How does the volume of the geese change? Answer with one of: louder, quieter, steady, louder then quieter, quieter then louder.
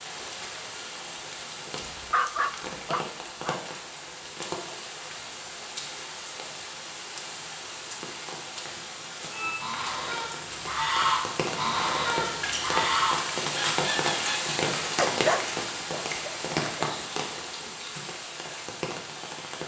louder then quieter.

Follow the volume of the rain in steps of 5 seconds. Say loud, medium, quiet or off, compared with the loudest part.
medium, medium, loud, loud.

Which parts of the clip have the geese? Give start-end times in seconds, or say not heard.
9.3-14.6.